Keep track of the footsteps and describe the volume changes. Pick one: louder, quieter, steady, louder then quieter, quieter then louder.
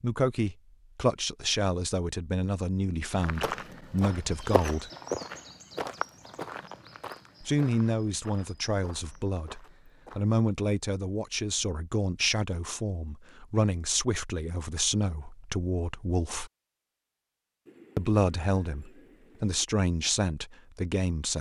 quieter.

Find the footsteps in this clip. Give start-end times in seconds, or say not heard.
3.1-10.2.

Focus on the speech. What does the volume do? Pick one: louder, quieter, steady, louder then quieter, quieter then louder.
steady.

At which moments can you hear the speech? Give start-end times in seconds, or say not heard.
0.0-4.9, 7.4-16.5, 17.9-21.3.